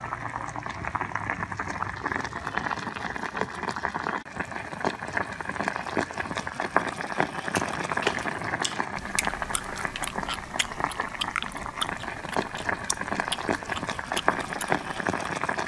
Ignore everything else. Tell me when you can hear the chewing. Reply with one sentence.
The chewing can be heard from 7.5 to 14.8 s.